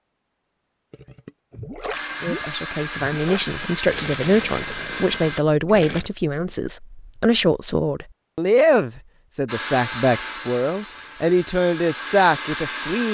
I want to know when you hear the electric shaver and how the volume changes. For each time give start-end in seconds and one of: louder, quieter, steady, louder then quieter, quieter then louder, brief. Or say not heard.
not heard.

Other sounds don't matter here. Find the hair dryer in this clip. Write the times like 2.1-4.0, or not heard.
1.9-5.5, 9.4-13.1.